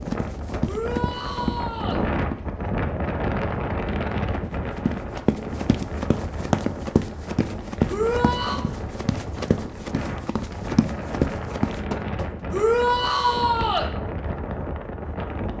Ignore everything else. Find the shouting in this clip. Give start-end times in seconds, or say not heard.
0.7-2.0, 7.8-8.6, 12.5-13.9.